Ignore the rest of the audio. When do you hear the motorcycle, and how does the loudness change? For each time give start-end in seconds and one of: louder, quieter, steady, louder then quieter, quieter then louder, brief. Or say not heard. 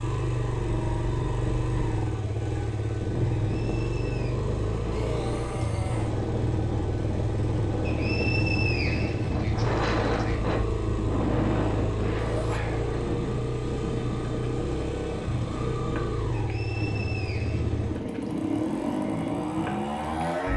0.0-20.5 steady.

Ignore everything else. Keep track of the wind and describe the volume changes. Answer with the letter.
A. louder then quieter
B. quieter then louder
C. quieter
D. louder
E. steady
A.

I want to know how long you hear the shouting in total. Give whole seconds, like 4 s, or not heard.
2 s.